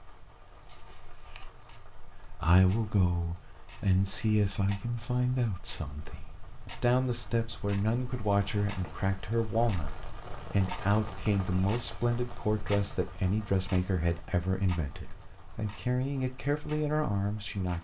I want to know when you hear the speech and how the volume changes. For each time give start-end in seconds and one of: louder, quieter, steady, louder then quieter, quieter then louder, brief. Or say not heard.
2.2-17.7 steady.